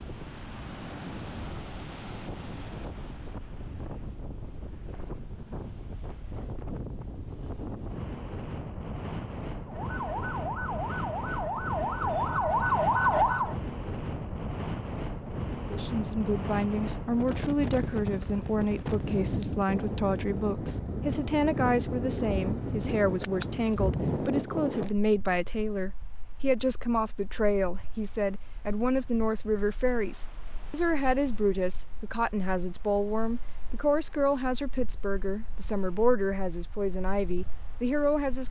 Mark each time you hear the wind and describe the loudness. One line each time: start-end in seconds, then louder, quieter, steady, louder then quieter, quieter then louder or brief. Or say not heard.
0.0-38.4 louder then quieter.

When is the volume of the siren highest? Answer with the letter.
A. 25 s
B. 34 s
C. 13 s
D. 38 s
C.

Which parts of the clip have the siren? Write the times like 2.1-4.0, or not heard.
9.7-13.6.